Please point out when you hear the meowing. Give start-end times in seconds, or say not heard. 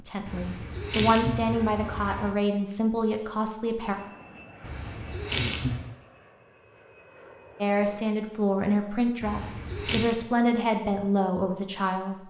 0.2-2.4, 4.6-6.0, 9.2-10.2.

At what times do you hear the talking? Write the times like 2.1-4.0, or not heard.
0.0-4.0, 7.6-12.2.